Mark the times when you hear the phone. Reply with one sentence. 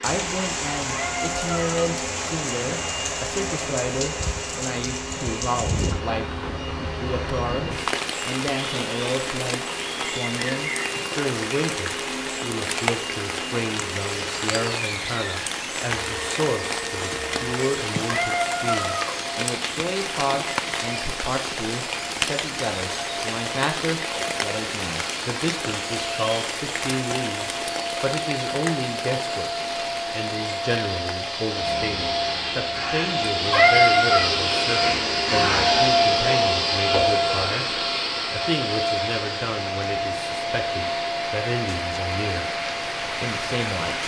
The phone can't be heard in this clip.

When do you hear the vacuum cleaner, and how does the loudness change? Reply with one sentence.
You can hear the vacuum cleaner from 0.0 to 44.0 s, getting louder.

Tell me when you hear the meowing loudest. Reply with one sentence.
The volume of the meowing peaks at 34 seconds.